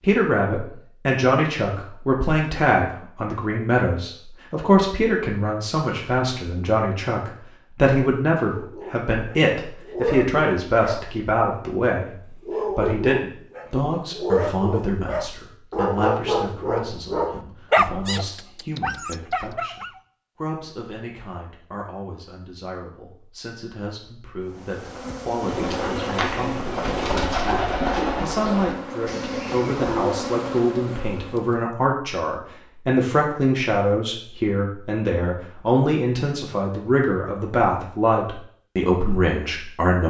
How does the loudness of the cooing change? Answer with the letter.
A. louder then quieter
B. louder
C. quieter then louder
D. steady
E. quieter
A.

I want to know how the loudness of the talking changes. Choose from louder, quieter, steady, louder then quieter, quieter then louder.
quieter then louder.